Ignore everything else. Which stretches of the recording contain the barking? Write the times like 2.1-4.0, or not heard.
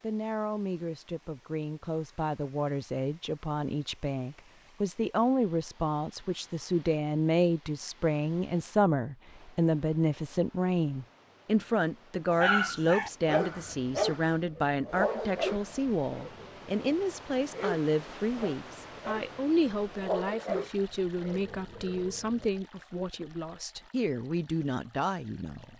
12.3-22.4.